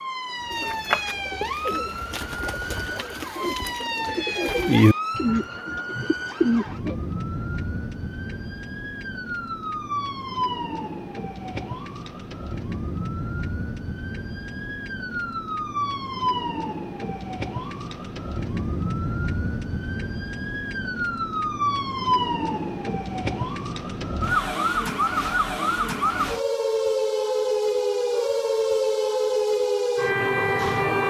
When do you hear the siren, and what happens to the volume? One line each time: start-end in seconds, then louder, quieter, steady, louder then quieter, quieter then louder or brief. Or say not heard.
0.0-31.0 louder.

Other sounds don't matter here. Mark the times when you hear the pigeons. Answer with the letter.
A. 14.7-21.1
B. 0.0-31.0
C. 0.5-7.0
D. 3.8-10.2
C.